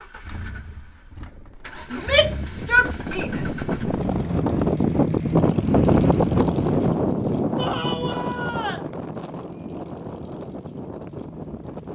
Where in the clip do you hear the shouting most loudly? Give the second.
3 s.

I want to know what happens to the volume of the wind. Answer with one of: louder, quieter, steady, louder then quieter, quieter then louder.
louder then quieter.